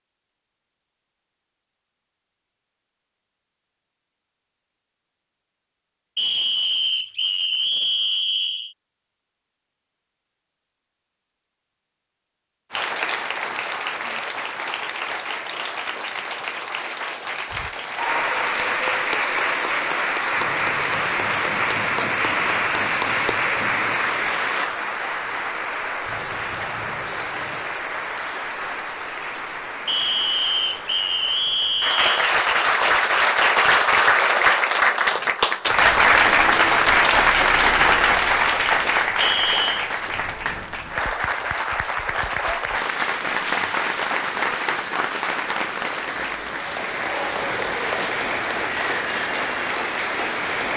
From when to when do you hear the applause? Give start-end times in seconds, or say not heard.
12.7-50.7.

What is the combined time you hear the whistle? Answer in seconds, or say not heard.
6 s.